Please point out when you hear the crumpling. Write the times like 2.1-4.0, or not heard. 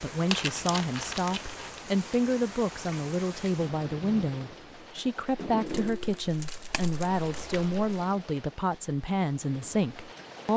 0.3-1.8, 5.7-8.1.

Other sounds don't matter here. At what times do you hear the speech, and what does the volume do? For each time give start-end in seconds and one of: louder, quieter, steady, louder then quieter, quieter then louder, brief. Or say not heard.
0.0-10.5 steady.